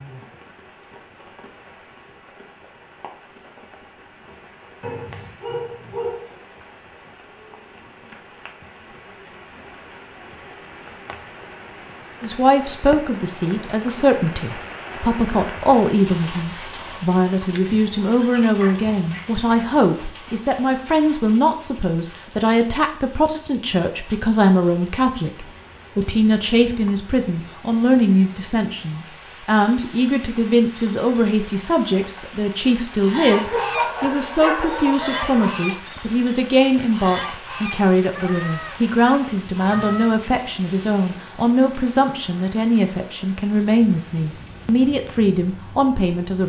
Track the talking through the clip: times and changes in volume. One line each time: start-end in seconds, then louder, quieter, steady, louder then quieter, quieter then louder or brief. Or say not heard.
12.2-46.4 steady.